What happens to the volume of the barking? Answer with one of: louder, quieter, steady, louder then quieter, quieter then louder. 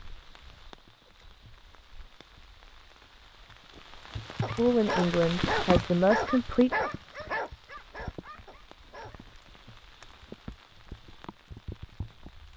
quieter.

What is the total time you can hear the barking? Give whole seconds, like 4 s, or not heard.
5 s.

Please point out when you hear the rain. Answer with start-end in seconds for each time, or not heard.
0.0-12.5.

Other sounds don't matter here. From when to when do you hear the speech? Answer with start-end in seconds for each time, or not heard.
4.5-6.8.